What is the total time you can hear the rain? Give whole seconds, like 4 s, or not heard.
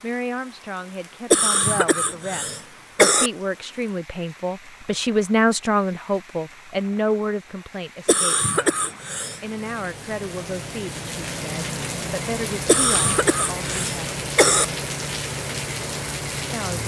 17 s.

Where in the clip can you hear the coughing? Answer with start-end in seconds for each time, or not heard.
1.3-3.3, 8.1-9.4, 12.7-14.7.